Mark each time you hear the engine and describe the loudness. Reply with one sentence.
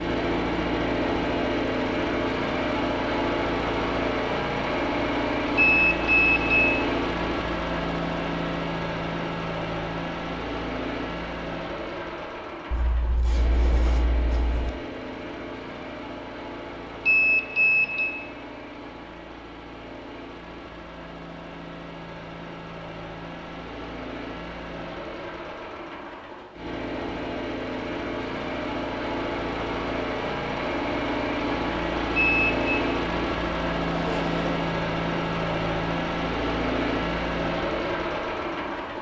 You can hear the engine from 0.0 to 38.9 s, getting quieter then louder.